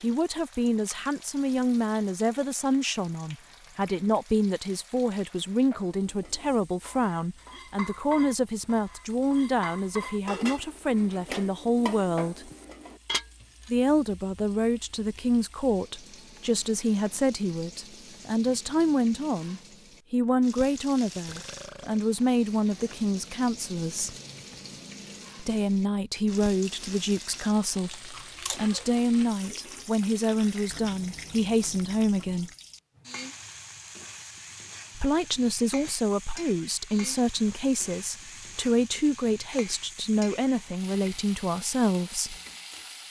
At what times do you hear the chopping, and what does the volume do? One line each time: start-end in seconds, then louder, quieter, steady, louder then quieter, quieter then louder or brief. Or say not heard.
not heard.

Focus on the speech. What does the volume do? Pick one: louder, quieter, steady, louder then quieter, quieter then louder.
steady.